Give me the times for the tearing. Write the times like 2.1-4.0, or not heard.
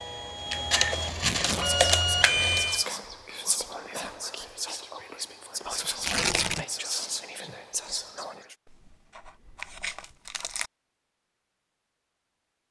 1.1-1.8, 6.0-6.7, 8.7-10.7.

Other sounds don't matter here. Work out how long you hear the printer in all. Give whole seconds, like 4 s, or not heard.
3 s.